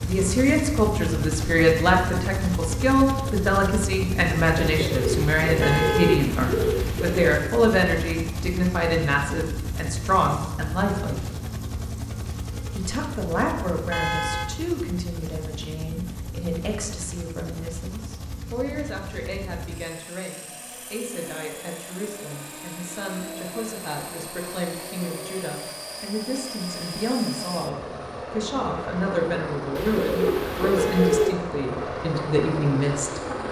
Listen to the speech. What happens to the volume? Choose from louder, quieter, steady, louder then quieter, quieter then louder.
quieter then louder.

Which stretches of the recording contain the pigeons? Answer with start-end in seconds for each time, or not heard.
4.6-7.3, 29.8-31.4.